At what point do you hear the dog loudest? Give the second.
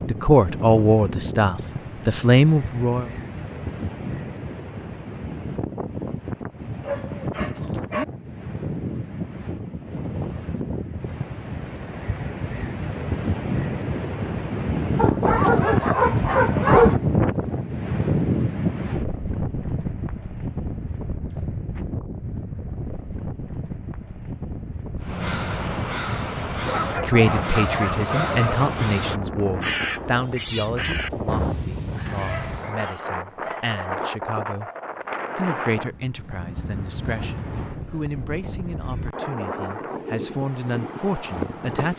17 s.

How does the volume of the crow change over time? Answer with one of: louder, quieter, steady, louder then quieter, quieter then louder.
steady.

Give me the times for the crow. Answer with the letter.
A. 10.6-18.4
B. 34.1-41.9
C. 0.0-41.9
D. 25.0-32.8
D.